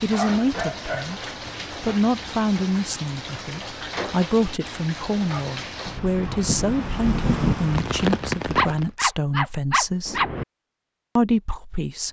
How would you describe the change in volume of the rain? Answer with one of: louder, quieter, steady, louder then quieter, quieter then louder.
louder.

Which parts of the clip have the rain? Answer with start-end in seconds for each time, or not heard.
0.0-8.9.